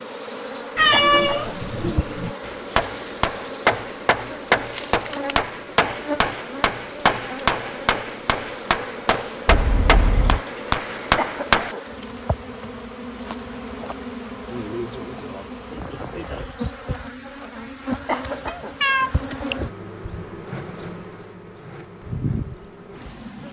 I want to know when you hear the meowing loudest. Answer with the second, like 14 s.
1 s.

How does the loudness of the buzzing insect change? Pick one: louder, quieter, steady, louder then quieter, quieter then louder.
steady.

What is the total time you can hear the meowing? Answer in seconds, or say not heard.
4 s.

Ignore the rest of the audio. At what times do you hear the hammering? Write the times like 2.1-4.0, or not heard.
2.4-11.8.